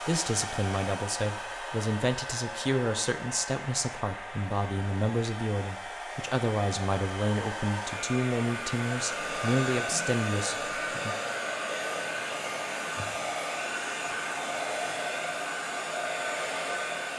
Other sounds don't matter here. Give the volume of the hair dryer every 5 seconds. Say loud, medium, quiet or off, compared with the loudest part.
medium, loud, loud, loud.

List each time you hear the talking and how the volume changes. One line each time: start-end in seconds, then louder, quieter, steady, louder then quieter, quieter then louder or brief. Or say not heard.
0.0-11.2 steady.